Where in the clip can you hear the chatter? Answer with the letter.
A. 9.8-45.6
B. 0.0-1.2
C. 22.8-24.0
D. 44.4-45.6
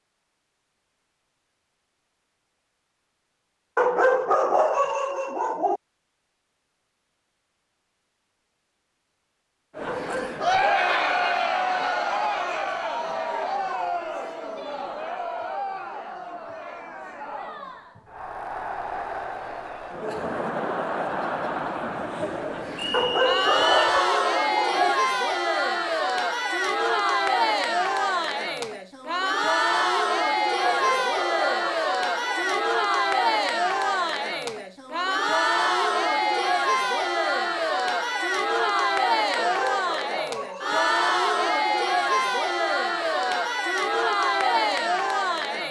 A.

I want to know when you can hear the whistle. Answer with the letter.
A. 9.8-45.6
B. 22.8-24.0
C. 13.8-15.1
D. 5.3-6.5
B.